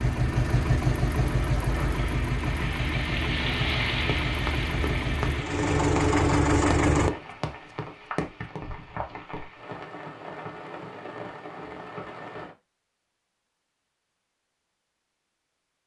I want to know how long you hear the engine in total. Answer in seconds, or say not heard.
7 s.